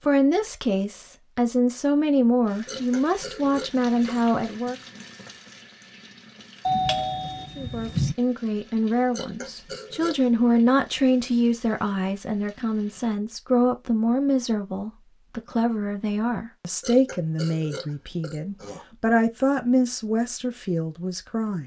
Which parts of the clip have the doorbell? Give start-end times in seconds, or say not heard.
6.7-8.2.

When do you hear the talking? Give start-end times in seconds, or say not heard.
0.0-4.8, 7.5-21.6.